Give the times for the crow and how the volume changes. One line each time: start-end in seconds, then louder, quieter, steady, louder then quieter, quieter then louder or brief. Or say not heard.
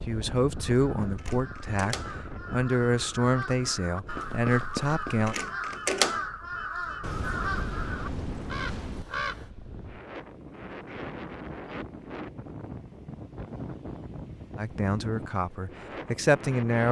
0.5-9.5 louder then quieter.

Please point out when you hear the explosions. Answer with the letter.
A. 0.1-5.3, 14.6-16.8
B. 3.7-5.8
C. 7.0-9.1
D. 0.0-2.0
C.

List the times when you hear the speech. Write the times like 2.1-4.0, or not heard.
0.1-5.3, 14.6-16.8.